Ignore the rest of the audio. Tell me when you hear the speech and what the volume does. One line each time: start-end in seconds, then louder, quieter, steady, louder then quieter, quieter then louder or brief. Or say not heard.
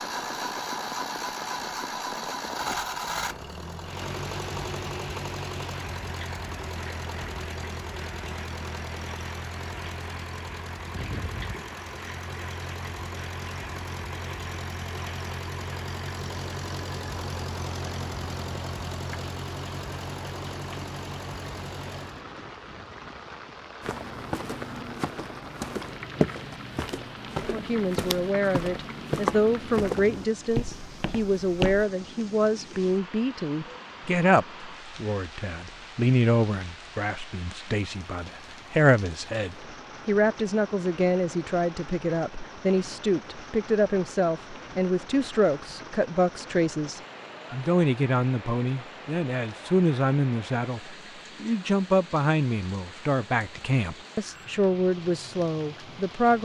27.4-56.4 steady.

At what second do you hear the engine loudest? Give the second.
3 s.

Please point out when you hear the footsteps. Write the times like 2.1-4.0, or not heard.
23.8-31.9.